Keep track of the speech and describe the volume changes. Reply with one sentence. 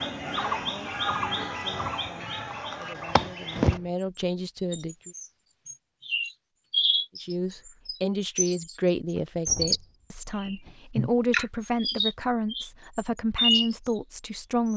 The volume of the speech goes up.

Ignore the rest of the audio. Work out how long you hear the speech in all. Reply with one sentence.
The speech can be heard for 12 seconds in total.